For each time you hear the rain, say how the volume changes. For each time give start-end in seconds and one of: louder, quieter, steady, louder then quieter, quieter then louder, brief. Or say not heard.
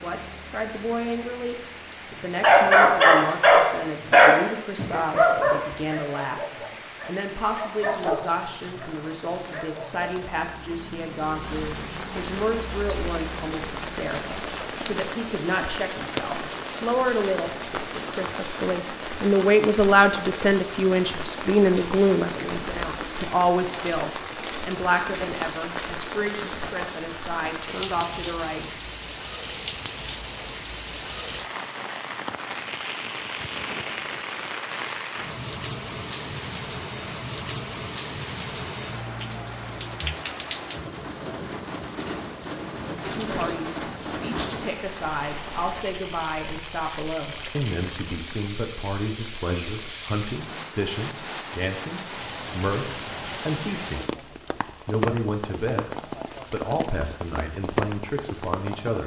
0.0-59.0 louder.